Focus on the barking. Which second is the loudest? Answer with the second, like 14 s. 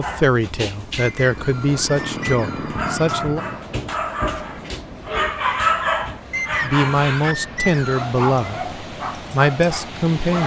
6 s.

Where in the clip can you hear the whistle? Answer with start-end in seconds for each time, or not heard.
0.9-2.6, 6.3-8.1.